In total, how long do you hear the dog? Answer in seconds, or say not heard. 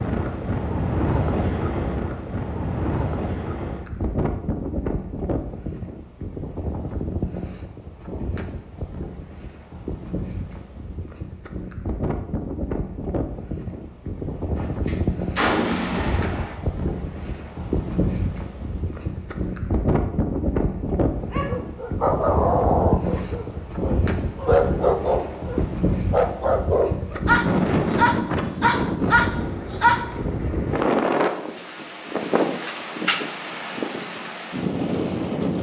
9 s.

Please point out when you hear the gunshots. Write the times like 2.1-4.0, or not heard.
14.6-16.6.